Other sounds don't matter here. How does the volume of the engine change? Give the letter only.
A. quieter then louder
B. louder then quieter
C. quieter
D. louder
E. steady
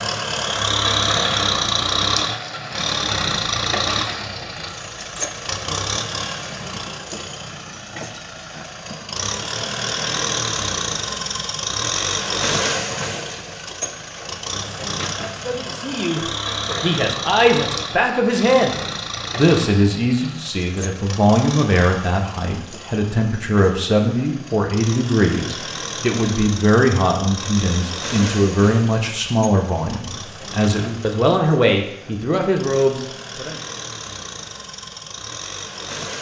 C.